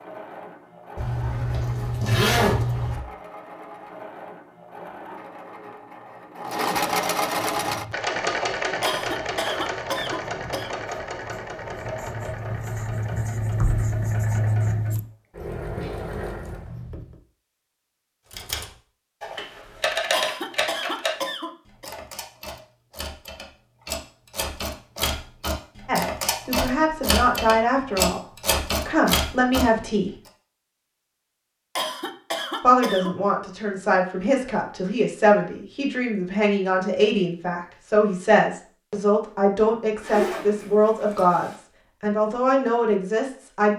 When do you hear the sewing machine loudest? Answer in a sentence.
The loudest moment of the sewing machine is at 7 seconds.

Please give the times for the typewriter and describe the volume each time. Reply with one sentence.
The typewriter can be heard from 18.3 to 29.6 s, getting quieter then louder.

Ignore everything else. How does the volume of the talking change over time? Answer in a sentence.
The volume of the talking stays about the same.